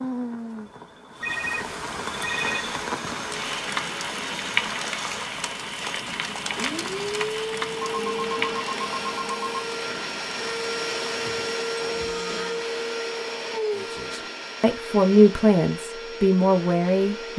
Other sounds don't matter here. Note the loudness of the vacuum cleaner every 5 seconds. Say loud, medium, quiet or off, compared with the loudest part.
medium, loud, loud, medium.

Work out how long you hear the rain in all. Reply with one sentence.
You can hear the rain for 12 seconds altogether.